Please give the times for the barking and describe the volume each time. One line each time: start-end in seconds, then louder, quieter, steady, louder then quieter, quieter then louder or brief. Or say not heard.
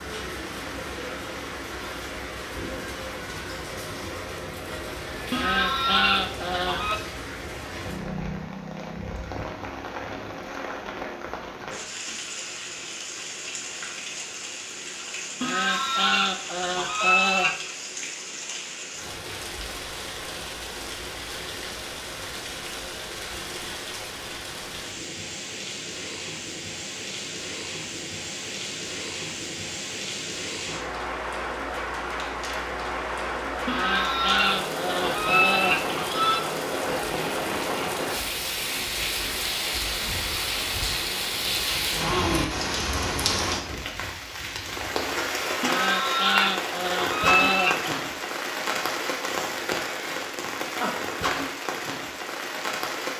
not heard.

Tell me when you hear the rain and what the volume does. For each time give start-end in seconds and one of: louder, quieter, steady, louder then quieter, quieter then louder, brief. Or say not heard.
0.0-53.1 louder.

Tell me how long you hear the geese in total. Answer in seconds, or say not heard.
9 s.